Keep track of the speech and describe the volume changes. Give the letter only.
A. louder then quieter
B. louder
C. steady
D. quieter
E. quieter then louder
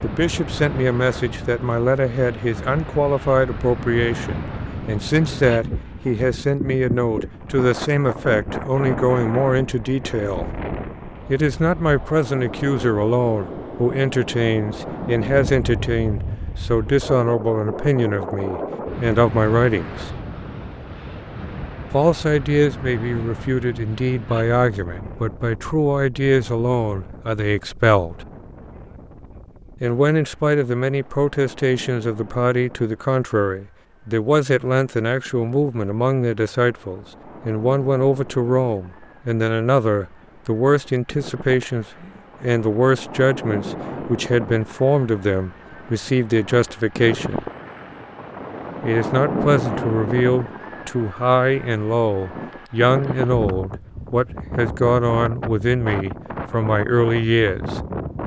C.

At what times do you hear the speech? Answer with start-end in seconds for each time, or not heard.
0.0-10.5, 11.2-20.1, 21.9-28.2, 29.8-47.5, 48.8-57.8.